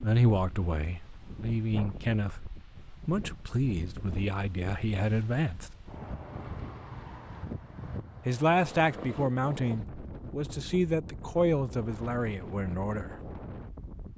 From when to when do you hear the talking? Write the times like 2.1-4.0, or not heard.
0.0-5.7, 8.2-13.2.